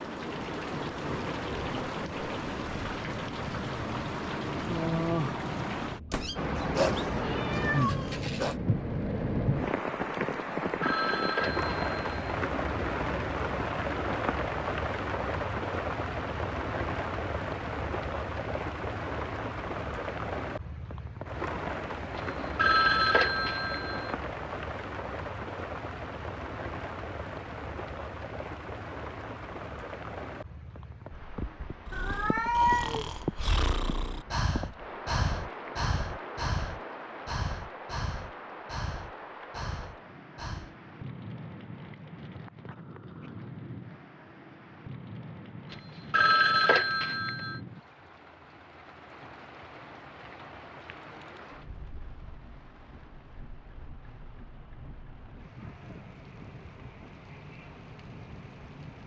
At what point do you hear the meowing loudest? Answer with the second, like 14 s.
33 s.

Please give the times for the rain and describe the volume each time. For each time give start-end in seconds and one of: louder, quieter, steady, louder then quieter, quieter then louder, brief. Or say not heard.
0.0-59.0 quieter.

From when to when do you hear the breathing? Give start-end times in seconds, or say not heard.
31.9-40.8.